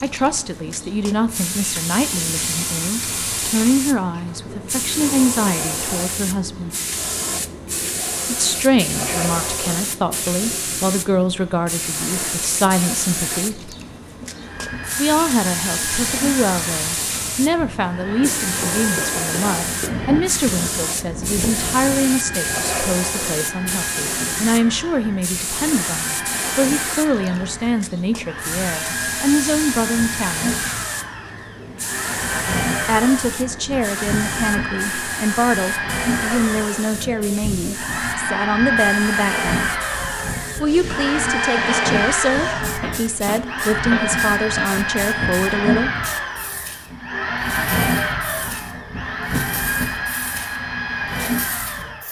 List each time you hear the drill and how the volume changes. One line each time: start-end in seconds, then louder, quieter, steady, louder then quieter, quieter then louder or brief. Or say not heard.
14.2-52.0 louder.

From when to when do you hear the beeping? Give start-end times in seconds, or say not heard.
not heard.